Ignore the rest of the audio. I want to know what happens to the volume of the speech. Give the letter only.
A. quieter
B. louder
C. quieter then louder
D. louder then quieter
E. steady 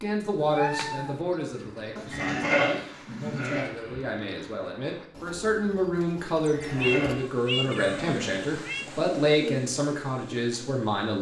C.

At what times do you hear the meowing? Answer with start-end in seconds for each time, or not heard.
0.3-1.2, 6.3-8.8.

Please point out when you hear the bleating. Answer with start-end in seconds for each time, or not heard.
1.9-3.6, 6.3-8.1.